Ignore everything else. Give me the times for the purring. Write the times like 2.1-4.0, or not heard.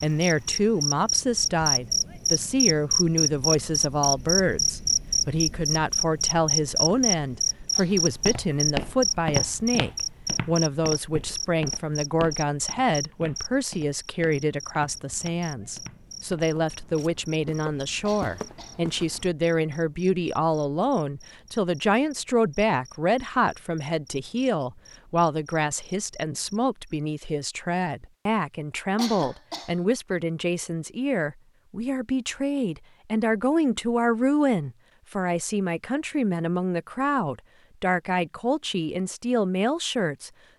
not heard.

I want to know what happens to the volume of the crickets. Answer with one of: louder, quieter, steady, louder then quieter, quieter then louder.
quieter.